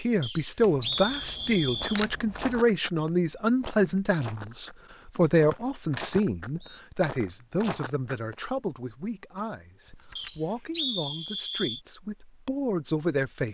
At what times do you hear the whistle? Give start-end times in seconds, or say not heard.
0.2-2.0, 5.5-6.8, 10.2-11.8.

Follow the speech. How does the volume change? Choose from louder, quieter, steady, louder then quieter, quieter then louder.
quieter.